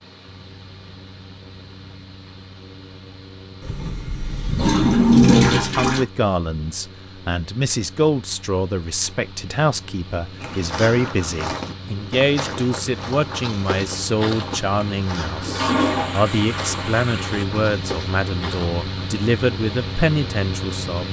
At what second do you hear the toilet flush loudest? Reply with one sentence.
The loudest moment of the toilet flush is at 5 seconds.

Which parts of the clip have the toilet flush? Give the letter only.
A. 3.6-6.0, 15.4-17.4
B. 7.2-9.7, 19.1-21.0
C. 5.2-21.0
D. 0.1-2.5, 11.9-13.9
A.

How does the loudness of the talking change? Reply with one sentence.
The volume of the talking stays about the same.